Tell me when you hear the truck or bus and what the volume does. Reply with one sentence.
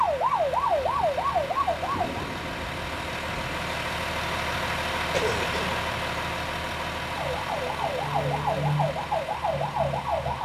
The truck or bus can be heard from 0.0 to 10.4 s, getting louder then quieter.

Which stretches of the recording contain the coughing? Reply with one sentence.
The coughing can be heard from 5.1 to 5.8 s.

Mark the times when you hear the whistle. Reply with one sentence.
The whistle can't be heard in this clip.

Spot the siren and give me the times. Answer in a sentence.
The siren can be heard from 0.0 to 2.1 s and from 7.0 to 10.4 s.